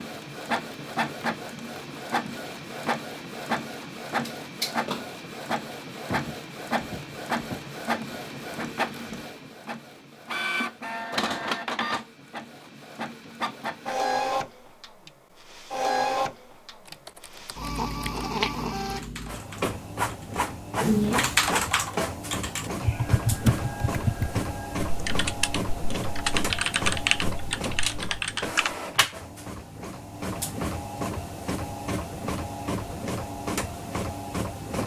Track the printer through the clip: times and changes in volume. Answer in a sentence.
The printer can be heard from 0.0 to 34.8 s, at a steady volume.